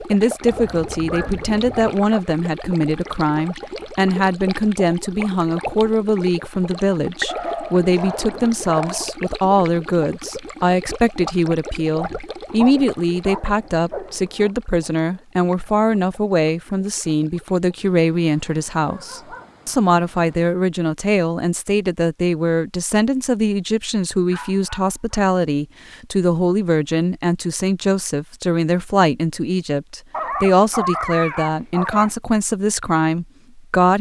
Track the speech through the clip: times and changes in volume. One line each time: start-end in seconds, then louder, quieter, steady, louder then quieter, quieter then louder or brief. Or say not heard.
0.1-33.9 steady.